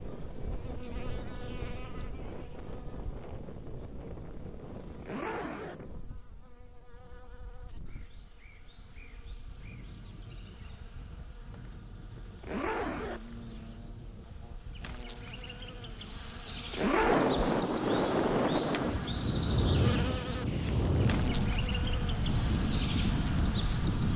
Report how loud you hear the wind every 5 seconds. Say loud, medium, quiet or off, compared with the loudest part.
quiet, quiet, quiet, loud, loud.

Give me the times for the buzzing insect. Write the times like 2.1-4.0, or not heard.
0.0-24.1.